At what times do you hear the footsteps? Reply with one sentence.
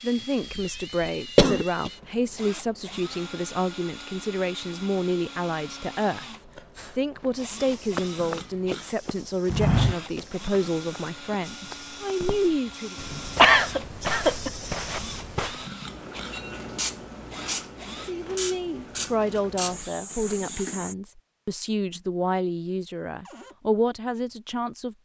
The footsteps can be heard from 7.2 to 15.7 s.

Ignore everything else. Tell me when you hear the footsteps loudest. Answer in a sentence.
The volume of the footsteps peaks at 10 seconds.